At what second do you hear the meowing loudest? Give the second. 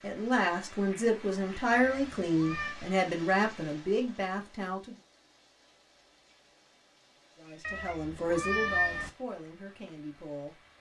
9 s.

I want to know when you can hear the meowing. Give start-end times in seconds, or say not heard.
1.7-2.8, 7.6-9.1.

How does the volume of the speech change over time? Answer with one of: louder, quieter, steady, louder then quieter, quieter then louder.
quieter.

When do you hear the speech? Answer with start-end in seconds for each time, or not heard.
0.0-5.0, 7.3-10.6.